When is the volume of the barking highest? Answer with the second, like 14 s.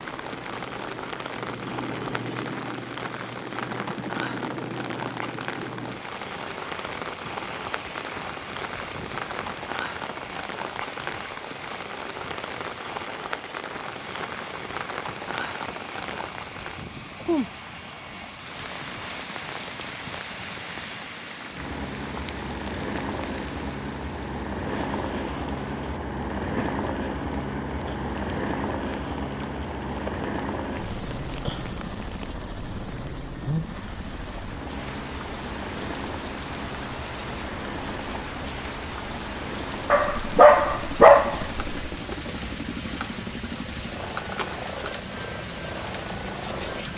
41 s.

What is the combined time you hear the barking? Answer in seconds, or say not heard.
2 s.